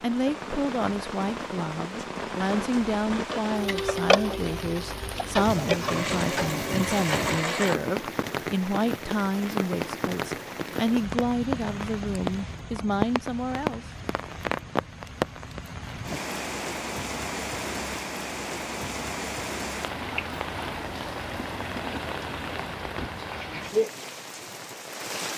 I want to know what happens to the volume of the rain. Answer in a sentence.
The volume of the rain stays about the same.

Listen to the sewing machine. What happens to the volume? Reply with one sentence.
The volume of the sewing machine goes down, then up.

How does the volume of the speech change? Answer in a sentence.
The volume of the speech stays about the same.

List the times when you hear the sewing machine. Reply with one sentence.
You can hear the sewing machine from 3.3 to 7.8 s.